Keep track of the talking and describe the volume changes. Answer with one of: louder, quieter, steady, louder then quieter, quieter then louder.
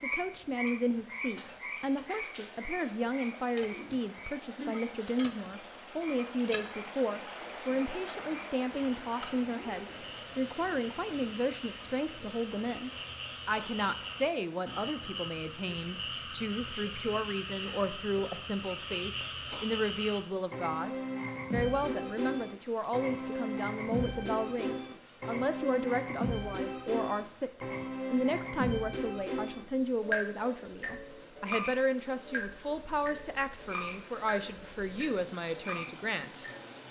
steady.